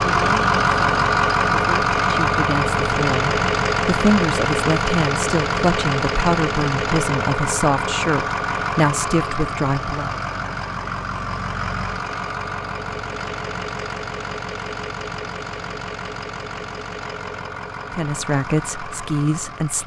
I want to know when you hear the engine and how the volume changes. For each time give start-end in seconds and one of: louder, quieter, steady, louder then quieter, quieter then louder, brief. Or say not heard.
0.0-19.8 quieter.